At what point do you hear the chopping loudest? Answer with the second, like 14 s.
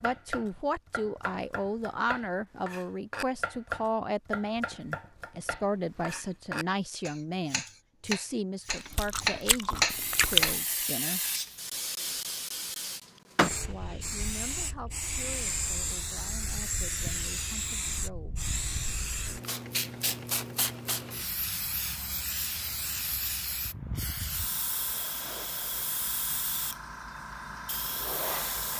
10 s.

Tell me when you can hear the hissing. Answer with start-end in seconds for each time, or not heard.
9.8-28.7.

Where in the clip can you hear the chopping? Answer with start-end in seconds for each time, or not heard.
0.0-10.6.